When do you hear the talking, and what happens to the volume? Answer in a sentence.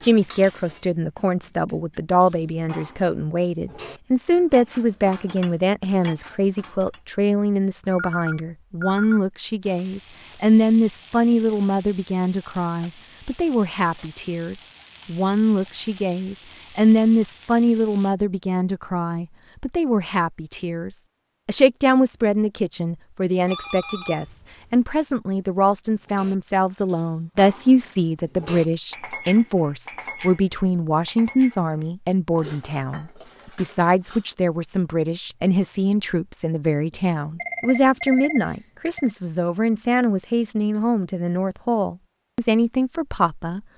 You can hear the talking from 0.0 to 43.6 s, at a steady volume.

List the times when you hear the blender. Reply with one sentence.
You can't hear the blender here.